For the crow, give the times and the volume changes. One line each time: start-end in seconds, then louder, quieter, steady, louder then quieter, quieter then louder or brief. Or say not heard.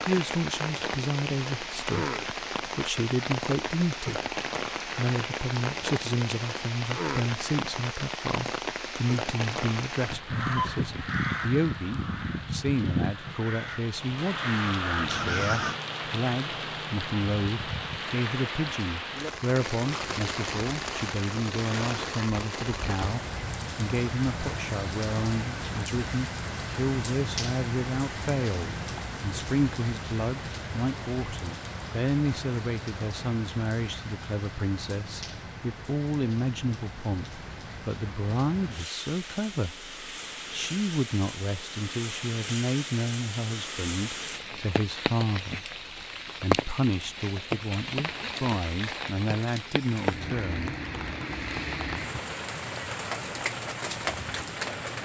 10.3-15.8 quieter then louder.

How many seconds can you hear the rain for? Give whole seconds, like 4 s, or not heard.
55 s.